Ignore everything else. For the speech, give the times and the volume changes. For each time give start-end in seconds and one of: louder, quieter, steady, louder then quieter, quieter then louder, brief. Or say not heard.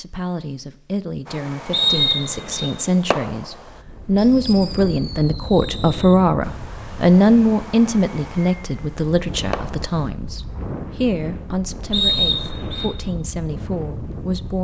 0.0-14.5 louder then quieter.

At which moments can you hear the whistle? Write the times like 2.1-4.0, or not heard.
1.7-2.7, 11.9-12.9.